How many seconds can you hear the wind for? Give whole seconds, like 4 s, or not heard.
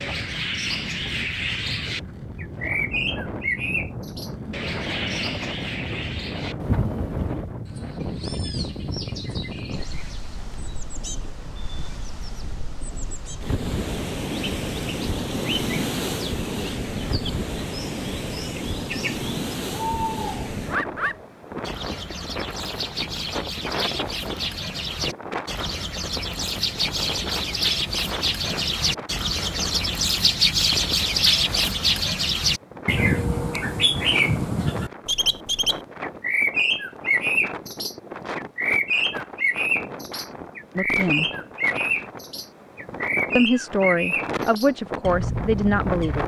46 s.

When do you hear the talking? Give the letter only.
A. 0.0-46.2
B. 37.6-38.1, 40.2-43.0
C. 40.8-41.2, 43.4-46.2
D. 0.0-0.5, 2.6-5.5
C.